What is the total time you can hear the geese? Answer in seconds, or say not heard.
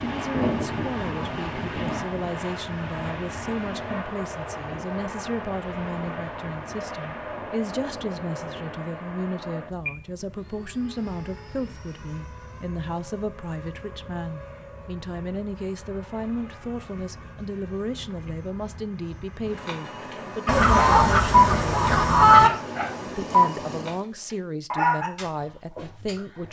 4 s.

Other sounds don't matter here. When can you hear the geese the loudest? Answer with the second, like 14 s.
22 s.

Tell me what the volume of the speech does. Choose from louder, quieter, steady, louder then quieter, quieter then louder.
steady.